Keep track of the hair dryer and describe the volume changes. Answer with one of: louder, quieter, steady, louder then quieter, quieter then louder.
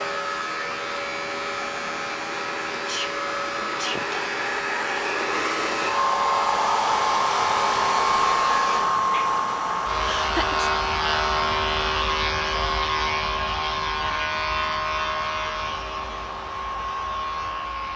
louder then quieter.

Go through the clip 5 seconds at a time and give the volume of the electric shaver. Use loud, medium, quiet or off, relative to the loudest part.
medium, medium, loud, medium.